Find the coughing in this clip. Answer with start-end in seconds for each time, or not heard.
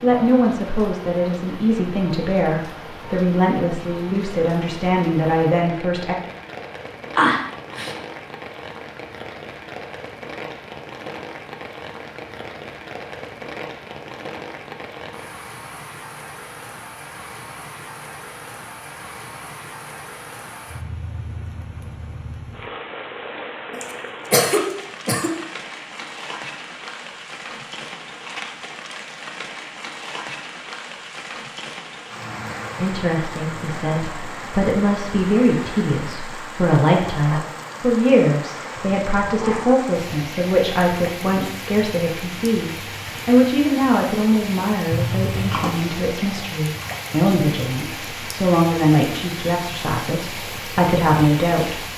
7.2-8.0, 23.7-25.3, 44.9-45.8.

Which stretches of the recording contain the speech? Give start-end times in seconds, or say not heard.
0.0-6.2, 32.8-51.9.